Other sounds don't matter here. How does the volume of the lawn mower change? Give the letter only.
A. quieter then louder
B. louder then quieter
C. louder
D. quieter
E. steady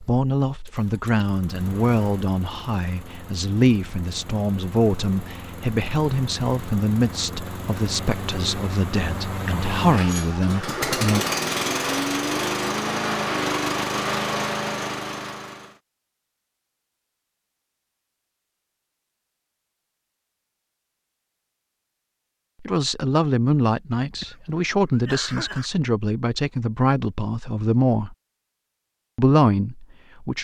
C.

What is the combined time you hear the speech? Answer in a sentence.
The speech can be heard for 18 seconds in total.